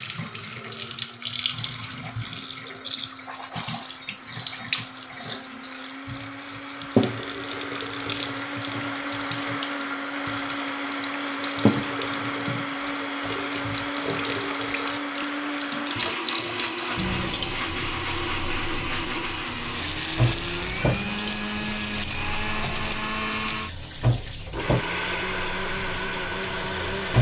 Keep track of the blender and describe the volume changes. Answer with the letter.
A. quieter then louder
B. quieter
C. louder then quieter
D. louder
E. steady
D.